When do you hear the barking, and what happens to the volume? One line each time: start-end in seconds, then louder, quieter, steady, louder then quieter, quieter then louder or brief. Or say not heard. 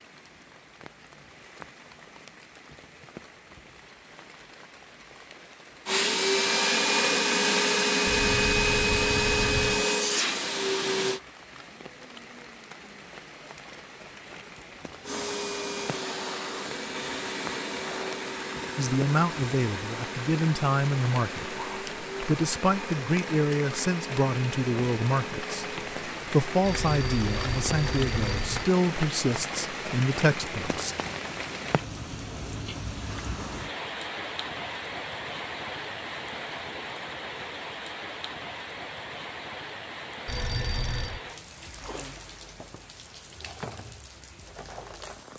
not heard.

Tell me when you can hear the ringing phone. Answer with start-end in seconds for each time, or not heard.
8.1-9.8, 26.6-28.6, 40.2-41.2.